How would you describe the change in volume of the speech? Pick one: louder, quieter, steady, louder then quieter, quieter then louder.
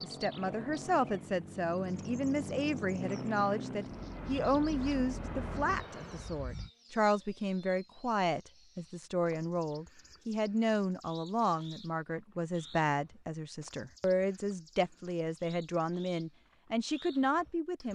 steady.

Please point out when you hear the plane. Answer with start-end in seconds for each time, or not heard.
0.0-6.7.